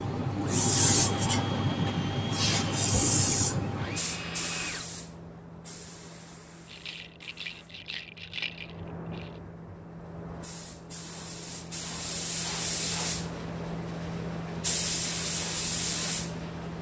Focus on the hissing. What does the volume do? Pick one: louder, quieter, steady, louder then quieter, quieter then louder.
quieter then louder.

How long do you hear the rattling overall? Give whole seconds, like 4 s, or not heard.
3 s.